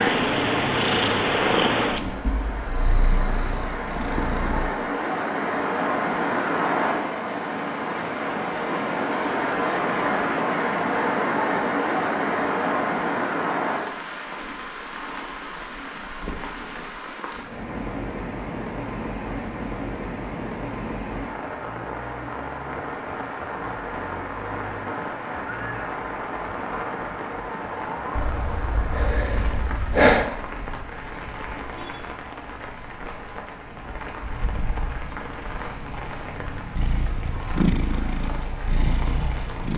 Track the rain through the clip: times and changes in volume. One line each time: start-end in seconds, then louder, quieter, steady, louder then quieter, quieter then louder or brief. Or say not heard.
0.0-39.7 quieter.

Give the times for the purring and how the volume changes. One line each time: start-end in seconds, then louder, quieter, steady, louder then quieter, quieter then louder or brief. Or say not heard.
0.0-4.7 quieter
36.8-39.7 brief.